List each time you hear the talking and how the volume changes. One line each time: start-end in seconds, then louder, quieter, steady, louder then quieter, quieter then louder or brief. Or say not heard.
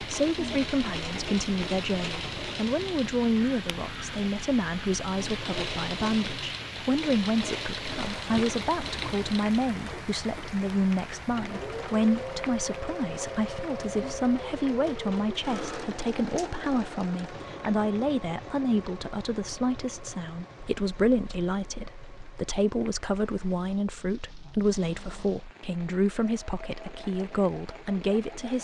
0.0-28.5 steady.